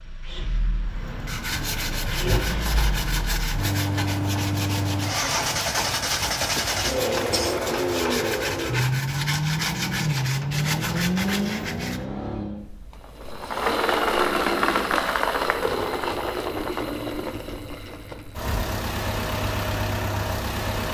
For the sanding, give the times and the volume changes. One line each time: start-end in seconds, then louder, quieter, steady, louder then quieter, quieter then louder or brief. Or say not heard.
0.8-12.1 steady.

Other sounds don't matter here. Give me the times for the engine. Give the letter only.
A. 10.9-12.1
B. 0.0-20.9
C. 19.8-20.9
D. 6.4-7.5
B.